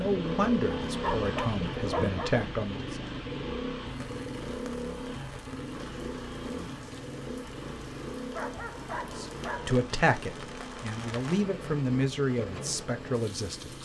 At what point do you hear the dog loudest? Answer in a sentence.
The volume of the dog peaks at 1 second.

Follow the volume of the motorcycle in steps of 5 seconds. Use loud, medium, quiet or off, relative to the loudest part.
loud, medium, medium.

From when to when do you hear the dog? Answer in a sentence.
The dog can be heard from 0.8 to 2.4 s and from 8.3 to 9.8 s.